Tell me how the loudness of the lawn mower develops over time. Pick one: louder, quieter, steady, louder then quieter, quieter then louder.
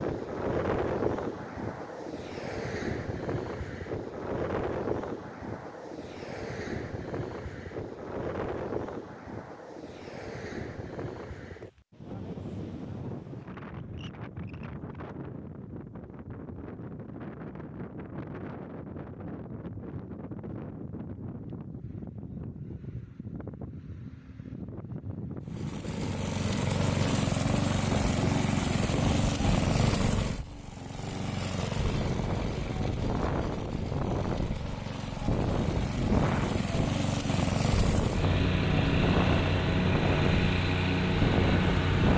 quieter then louder.